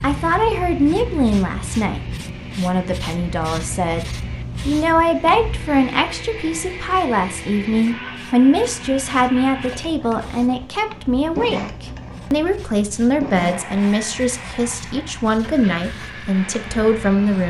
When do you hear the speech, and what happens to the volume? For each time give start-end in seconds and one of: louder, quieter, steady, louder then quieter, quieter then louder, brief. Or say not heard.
0.0-17.4 steady.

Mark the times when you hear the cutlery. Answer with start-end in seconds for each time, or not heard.
not heard.